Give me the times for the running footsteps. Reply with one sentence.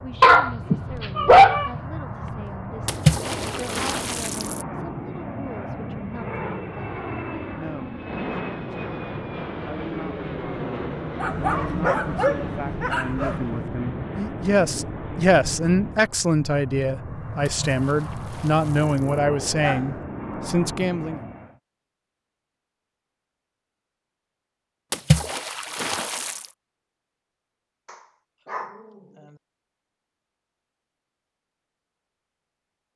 You can't hear the running footsteps here.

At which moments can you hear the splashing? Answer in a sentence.
You can hear the splashing from 2.9 to 4.7 s, from 17.4 to 19.2 s and from 24.9 to 26.4 s.